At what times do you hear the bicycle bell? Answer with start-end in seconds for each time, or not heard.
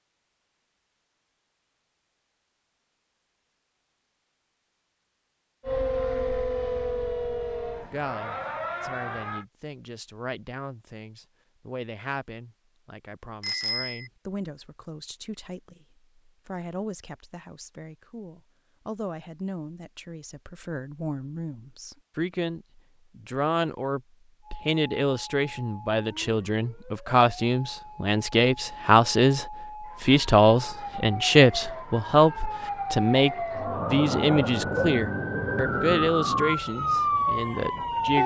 13.4-14.1.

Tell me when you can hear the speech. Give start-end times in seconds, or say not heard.
7.9-38.2.